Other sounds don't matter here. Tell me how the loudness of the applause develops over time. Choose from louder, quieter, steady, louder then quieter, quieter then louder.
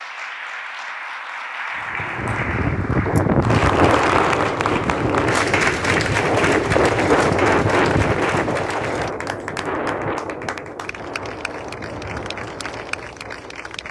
louder then quieter.